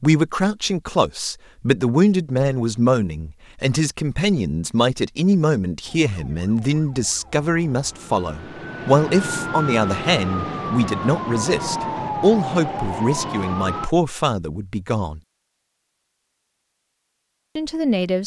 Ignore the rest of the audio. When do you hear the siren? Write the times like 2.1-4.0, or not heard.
5.8-13.9.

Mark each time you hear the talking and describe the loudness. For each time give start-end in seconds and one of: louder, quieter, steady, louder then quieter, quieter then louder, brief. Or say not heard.
0.0-15.2 steady
17.6-18.2 brief.